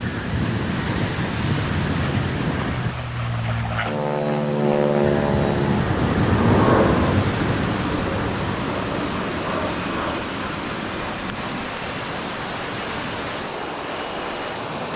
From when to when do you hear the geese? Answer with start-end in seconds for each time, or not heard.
0.0-3.0, 5.0-7.8, 11.8-13.5.